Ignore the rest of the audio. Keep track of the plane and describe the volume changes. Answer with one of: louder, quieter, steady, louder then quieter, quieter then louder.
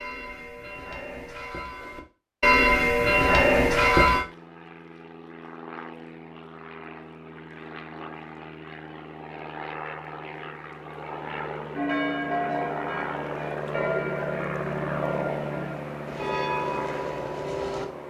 louder.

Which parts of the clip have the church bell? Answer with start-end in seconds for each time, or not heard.
0.0-4.2, 11.7-17.9.